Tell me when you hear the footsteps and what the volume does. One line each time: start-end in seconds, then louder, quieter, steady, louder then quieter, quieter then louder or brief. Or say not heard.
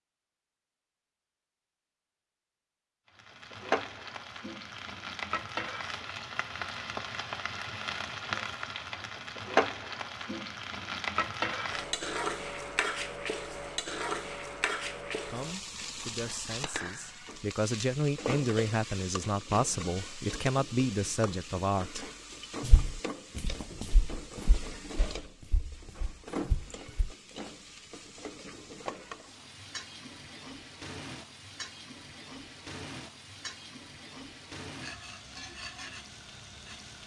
22.6-27.1 quieter then louder.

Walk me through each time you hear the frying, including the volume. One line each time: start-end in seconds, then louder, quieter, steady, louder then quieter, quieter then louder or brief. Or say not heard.
3.1-37.0 quieter.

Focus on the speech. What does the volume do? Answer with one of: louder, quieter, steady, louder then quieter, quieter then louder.
louder.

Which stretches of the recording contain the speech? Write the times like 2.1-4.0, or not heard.
15.2-22.1.